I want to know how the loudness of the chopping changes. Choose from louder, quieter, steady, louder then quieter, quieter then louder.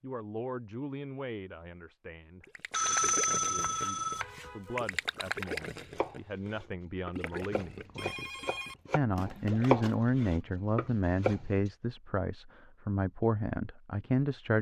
louder then quieter.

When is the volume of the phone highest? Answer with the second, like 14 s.
3 s.